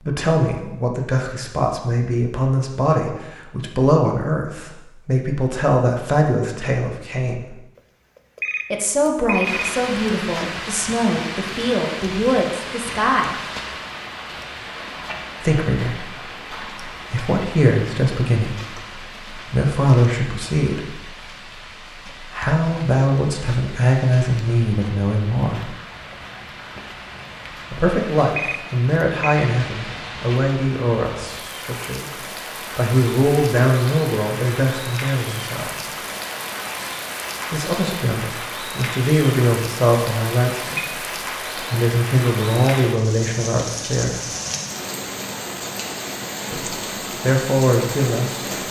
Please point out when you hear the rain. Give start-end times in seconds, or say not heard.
9.4-48.6.